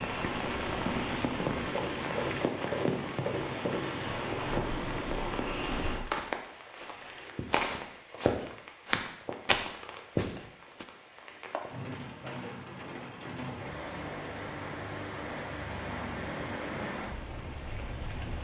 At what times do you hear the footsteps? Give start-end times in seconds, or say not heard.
0.0-10.8.